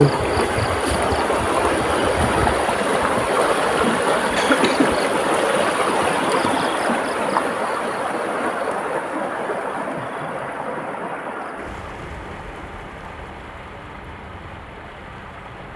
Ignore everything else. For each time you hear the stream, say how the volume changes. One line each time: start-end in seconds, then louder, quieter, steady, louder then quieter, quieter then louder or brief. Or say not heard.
0.0-15.7 quieter.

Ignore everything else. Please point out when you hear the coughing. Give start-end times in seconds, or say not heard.
4.3-5.0.